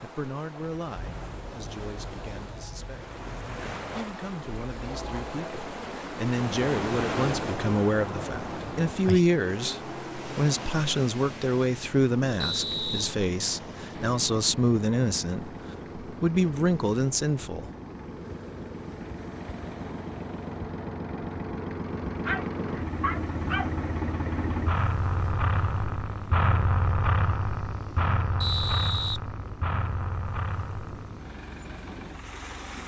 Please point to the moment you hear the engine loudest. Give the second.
27 s.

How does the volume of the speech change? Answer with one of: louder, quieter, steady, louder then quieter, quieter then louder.
louder.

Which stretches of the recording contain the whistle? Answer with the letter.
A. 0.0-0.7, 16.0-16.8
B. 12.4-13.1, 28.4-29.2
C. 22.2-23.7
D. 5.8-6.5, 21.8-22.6
B.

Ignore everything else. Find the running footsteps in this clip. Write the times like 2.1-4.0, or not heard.
not heard.